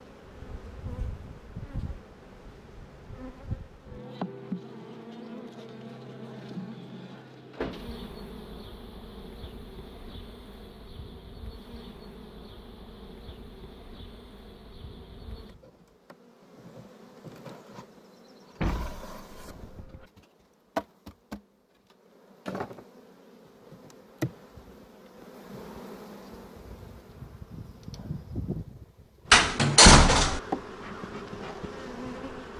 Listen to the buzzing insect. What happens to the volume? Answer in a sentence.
The volume of the buzzing insect goes down, then up.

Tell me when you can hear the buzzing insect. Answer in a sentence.
You can hear the buzzing insect from 0.0 to 32.5 s.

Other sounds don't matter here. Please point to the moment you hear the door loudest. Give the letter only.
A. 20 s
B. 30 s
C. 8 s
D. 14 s
B.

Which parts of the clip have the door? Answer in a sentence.
You can hear the door from 7.2 to 7.9 s, from 18.6 to 20.1 s and from 29.3 to 30.4 s.